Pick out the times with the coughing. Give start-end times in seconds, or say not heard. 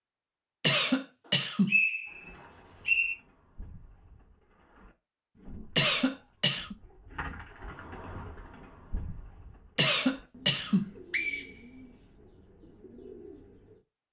0.6-1.8, 5.8-6.8, 9.8-10.9.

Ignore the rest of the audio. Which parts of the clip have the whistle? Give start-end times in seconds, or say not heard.
1.2-3.1, 11.1-11.8.